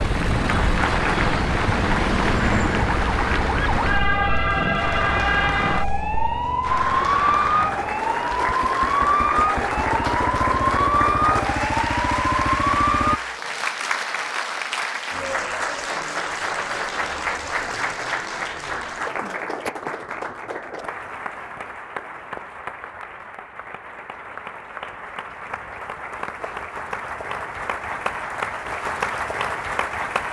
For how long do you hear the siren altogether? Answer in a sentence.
The siren can be heard for 13 seconds in total.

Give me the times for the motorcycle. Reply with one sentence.
The motorcycle can be heard from 0.0 to 13.2 s.